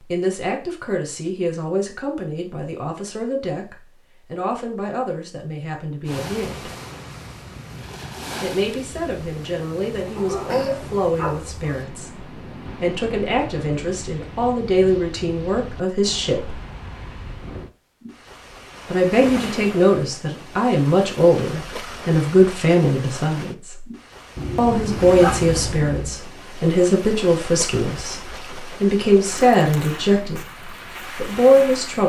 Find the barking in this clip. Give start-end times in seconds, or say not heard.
10.2-11.8, 24.4-26.1.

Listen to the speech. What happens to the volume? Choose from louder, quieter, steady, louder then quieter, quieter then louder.
louder.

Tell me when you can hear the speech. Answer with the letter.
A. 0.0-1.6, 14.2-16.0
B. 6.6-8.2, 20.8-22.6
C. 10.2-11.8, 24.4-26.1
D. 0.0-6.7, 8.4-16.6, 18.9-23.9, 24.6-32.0
D.